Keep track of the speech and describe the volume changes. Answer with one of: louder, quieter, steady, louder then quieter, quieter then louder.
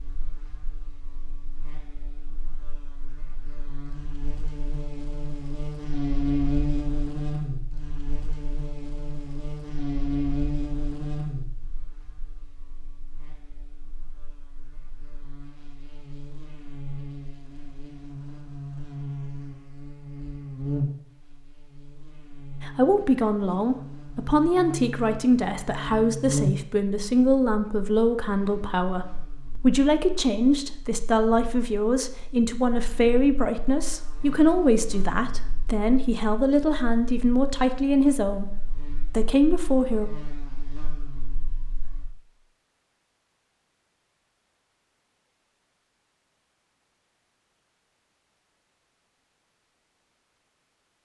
steady.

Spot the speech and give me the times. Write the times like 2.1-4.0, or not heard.
22.6-40.1.